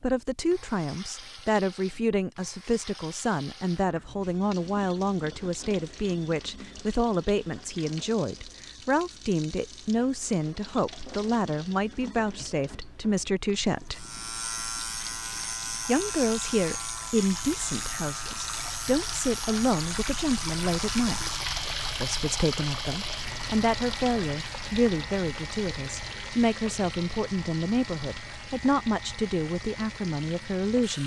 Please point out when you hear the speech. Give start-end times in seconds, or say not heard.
0.0-14.1, 15.8-21.4, 22.0-31.0.